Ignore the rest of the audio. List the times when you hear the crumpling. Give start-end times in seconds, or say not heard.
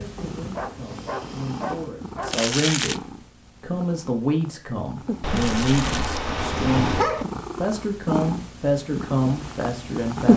2.2-3.0, 5.2-6.1.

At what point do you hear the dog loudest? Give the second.
7 s.